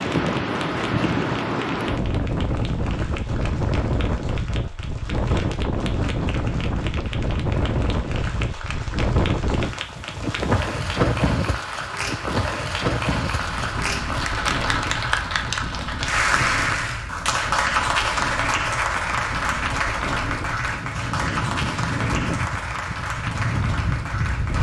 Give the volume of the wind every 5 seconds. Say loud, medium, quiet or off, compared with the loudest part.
loud, loud, loud, medium, loud.